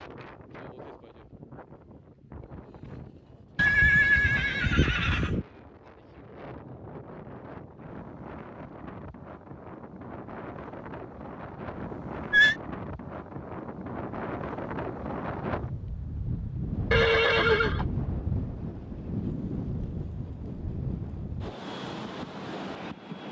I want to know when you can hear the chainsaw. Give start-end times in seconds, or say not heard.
not heard.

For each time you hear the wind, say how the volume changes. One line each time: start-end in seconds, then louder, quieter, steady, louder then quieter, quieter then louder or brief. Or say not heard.
0.0-23.2 louder.